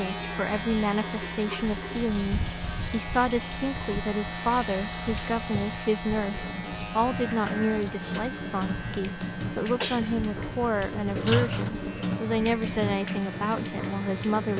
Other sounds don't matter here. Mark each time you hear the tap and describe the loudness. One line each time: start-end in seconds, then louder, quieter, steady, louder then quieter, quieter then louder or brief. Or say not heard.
0.0-14.5 louder.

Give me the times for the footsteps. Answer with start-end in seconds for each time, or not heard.
not heard.